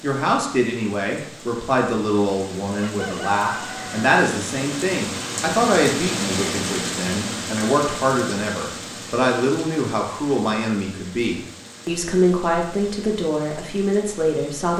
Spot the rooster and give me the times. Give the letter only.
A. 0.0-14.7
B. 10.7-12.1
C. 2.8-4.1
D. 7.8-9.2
C.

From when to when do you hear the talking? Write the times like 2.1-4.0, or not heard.
0.0-14.7.